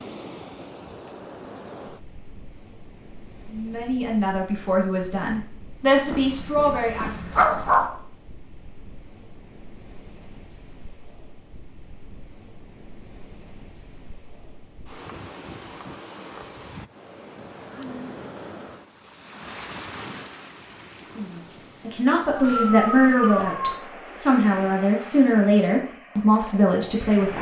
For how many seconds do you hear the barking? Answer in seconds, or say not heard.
3 s.